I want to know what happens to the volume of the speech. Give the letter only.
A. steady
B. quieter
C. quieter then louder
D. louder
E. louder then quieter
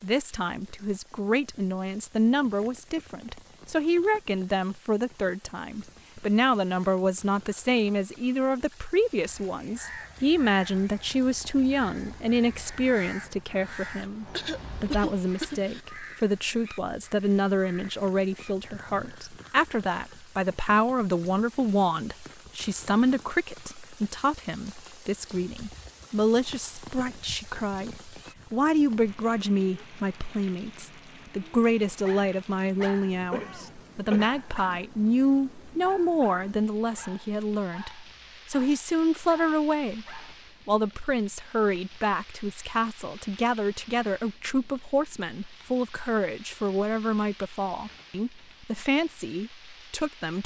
A.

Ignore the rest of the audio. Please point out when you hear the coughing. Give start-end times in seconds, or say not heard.
14.3-15.8, 33.3-34.4.